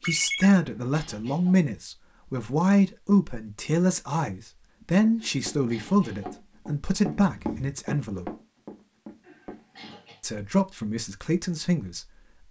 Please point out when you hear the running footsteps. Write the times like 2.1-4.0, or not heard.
5.0-9.9.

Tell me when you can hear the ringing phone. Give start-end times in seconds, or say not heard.
0.0-0.5, 7.2-7.8.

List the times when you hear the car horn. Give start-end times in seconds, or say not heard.
not heard.